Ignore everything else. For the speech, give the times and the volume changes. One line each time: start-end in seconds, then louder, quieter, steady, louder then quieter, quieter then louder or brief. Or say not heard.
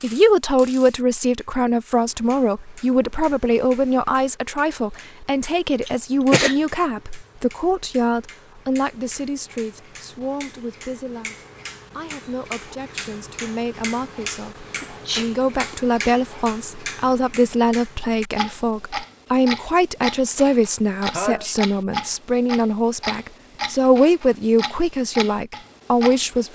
0.0-26.5 quieter then louder.